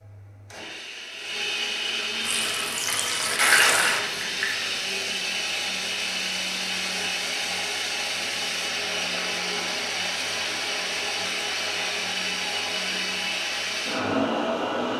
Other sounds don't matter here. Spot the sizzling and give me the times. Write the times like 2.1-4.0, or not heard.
2.2-4.8.